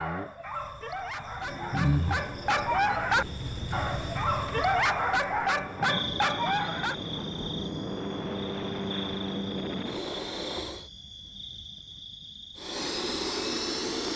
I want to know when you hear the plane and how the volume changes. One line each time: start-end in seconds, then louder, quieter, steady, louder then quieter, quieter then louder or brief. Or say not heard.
1.4-10.9 louder
12.6-14.1 brief.